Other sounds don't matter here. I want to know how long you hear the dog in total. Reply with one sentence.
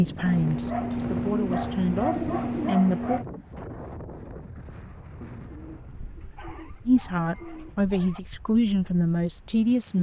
You can hear the dog for 5 seconds altogether.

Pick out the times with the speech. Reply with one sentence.
The speech can be heard from 0.0 to 3.2 s and from 6.8 to 9.9 s.